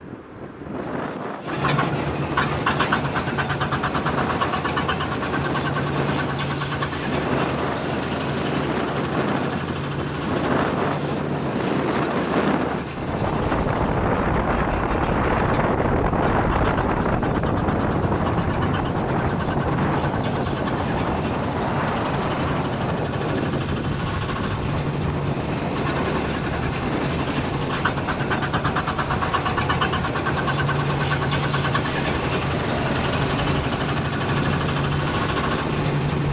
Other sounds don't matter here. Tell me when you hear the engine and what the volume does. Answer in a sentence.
You can hear the engine from 1.4 to 36.2 s, getting quieter then louder.